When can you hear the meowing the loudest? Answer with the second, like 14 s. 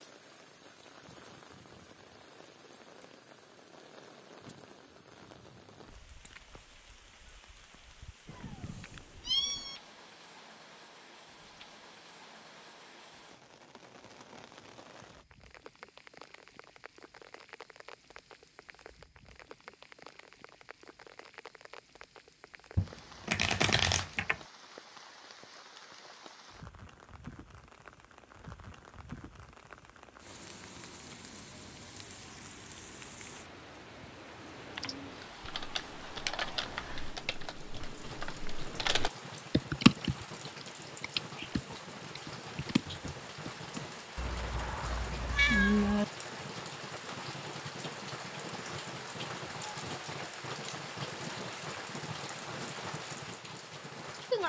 46 s.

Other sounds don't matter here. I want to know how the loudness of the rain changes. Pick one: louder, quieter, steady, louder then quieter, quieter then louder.
louder.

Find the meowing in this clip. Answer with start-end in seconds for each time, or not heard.
8.2-9.8, 44.1-46.0.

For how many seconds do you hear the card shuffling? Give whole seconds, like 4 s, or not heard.
2 s.